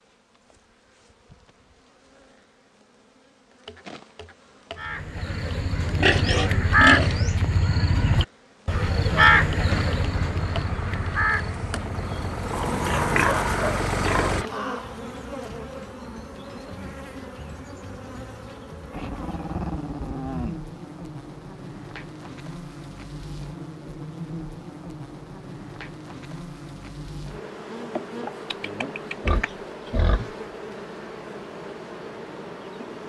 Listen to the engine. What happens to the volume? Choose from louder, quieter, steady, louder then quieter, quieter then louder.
louder.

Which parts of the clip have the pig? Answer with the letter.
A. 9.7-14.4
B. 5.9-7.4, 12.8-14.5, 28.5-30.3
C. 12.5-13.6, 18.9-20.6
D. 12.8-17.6
B.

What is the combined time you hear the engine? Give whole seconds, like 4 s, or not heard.
5 s.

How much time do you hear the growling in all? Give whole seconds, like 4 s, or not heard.
3 s.